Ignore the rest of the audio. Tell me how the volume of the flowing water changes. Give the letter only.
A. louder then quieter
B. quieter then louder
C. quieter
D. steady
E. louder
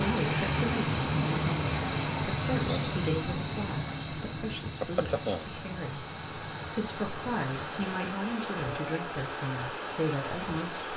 B.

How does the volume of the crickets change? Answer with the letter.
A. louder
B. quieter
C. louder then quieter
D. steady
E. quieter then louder
B.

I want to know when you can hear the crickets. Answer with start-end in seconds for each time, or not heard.
0.0-10.9.